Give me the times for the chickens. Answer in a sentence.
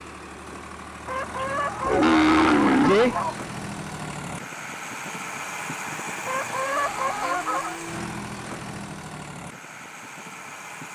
The chickens can be heard from 1.1 to 3.2 s and from 6.2 to 7.8 s.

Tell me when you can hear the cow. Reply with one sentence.
You can hear the cow from 1.4 to 3.4 s and from 6.8 to 8.2 s.